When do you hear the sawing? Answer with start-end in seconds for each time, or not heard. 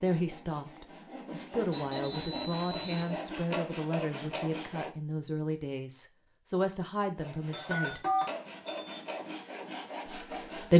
0.0-5.0, 7.2-10.7.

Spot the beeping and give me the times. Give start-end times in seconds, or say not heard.
1.7-3.0, 7.5-9.1.